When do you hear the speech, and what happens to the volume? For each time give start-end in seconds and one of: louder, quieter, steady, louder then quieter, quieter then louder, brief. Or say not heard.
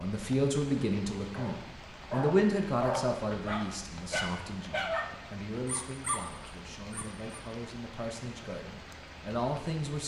0.0-10.0 quieter then louder.